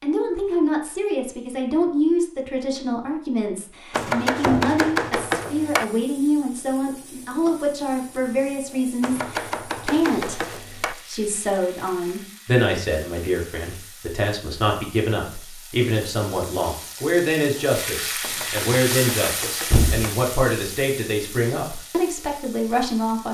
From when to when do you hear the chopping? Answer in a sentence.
The chopping can be heard from 3.9 to 5.8 s, from 9.0 to 10.9 s and from 18.2 to 20.1 s.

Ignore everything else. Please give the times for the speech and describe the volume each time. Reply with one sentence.
The speech can be heard from 0.0 to 23.2 s, at a steady volume.